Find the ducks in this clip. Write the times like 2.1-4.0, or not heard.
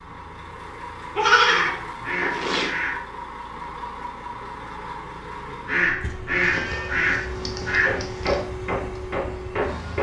1.4-3.0, 5.7-8.1.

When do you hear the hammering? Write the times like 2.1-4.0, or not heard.
7.8-9.9.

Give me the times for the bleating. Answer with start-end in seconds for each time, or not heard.
1.1-2.8, 6.4-8.4.